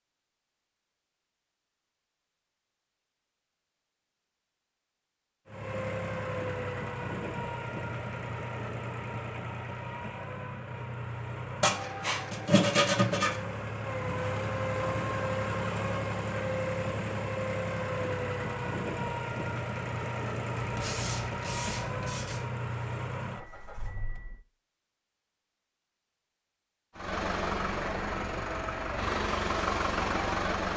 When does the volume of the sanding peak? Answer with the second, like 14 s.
13 s.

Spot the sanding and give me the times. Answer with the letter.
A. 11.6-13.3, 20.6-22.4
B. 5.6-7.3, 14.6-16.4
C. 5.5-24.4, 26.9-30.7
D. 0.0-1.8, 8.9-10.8
A.